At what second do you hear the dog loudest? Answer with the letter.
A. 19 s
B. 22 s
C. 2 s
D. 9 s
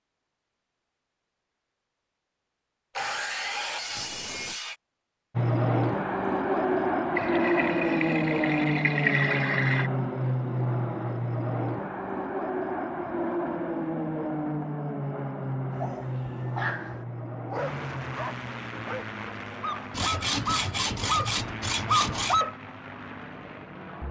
B.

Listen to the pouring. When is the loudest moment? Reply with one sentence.
The volume of the pouring peaks at 9 seconds.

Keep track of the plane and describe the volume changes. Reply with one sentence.
The volume of the plane goes down.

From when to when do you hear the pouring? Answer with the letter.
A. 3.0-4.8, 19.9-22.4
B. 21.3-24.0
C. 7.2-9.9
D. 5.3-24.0
C.